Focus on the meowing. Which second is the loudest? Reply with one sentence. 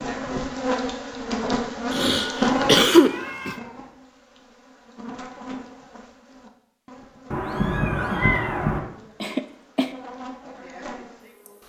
The volume of the meowing peaks at 8 seconds.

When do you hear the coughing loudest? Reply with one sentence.
The loudest moment of the coughing is at 3 seconds.